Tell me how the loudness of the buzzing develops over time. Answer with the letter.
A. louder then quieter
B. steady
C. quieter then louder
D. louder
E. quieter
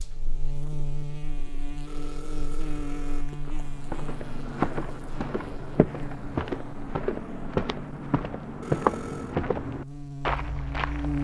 C.